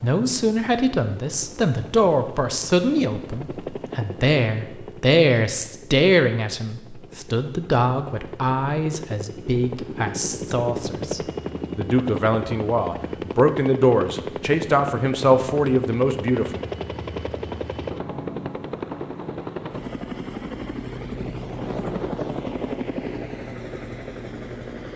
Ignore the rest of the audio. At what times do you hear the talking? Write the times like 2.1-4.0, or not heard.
0.0-16.6.